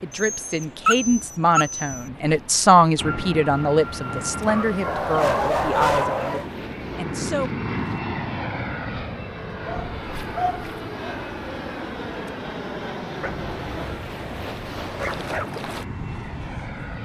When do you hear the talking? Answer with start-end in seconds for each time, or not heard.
0.0-7.5.